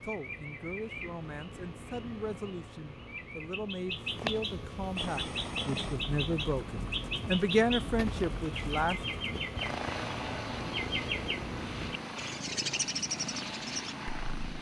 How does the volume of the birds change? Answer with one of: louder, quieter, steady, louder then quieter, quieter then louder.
louder.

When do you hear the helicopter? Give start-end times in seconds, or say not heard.
5.0-14.5.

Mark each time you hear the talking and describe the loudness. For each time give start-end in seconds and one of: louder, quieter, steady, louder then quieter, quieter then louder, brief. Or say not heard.
0.0-9.0 louder.